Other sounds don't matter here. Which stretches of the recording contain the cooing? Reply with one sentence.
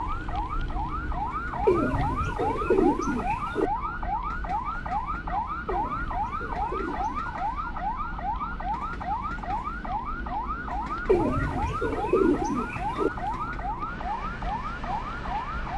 The cooing can be heard from 1.6 to 3.7 s, from 5.7 to 7.2 s and from 11.1 to 13.1 s.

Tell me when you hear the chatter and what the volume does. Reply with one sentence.
You can't hear the chatter here.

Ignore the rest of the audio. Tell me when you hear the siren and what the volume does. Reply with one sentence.
The siren can be heard from 0.0 to 15.7 s, at a steady volume.